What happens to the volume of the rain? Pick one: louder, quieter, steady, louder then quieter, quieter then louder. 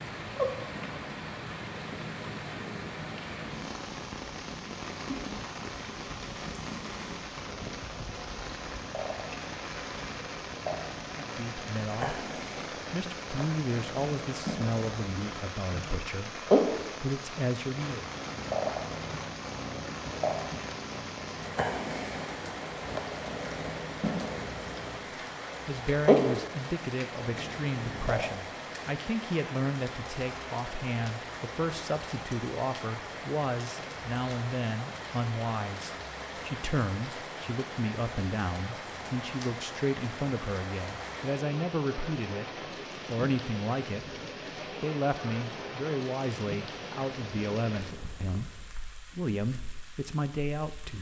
steady.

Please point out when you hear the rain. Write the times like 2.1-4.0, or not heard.
0.0-50.9.